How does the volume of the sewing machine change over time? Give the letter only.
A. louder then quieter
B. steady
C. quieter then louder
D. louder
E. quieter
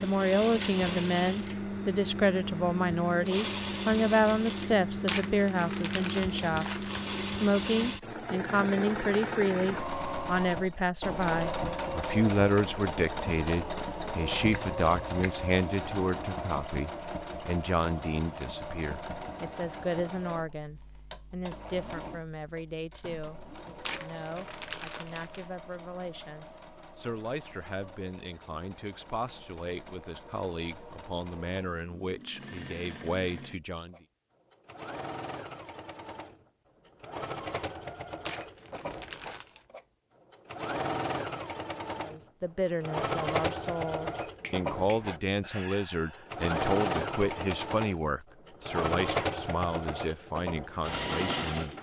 C.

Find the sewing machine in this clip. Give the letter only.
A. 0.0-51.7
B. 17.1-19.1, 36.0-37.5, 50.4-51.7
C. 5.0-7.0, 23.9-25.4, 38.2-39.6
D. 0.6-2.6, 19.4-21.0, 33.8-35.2
A.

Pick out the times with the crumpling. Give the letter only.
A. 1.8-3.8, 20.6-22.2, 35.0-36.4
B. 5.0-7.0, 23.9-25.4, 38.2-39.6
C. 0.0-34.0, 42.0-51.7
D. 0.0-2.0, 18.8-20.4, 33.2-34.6
B.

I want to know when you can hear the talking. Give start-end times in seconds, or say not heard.
0.0-34.0, 42.0-51.7.